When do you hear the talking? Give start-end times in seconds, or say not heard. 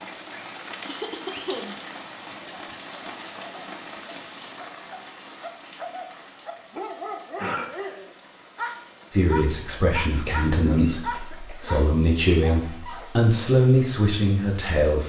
9.1-15.0.